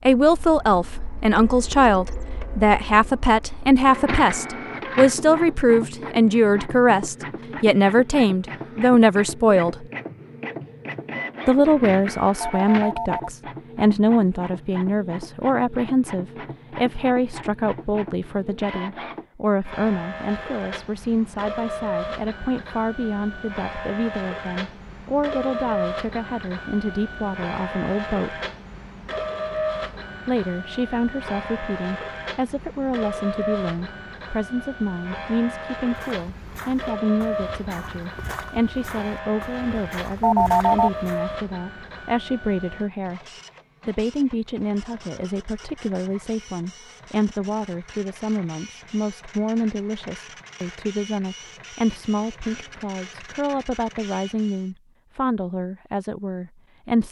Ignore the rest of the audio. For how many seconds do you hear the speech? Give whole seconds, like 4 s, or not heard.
53 s.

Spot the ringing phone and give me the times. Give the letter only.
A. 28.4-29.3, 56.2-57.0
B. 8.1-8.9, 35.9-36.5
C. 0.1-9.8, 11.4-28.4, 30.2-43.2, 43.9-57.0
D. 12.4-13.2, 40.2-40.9
D.